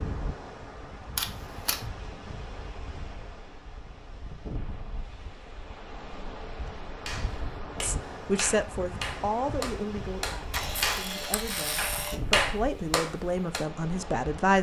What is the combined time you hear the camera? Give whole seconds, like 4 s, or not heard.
2 s.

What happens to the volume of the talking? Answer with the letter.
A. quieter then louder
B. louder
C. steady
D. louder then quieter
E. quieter
A.